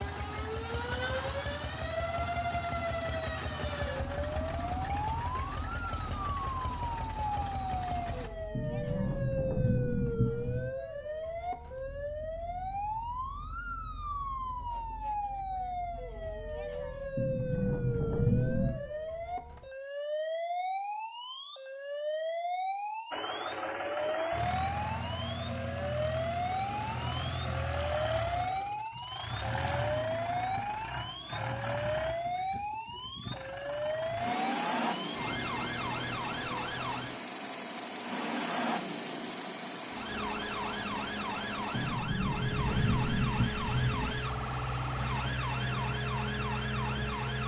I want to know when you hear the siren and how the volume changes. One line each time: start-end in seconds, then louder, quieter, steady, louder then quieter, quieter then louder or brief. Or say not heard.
0.0-37.2 steady
39.9-47.4 steady.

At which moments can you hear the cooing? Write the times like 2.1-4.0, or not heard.
not heard.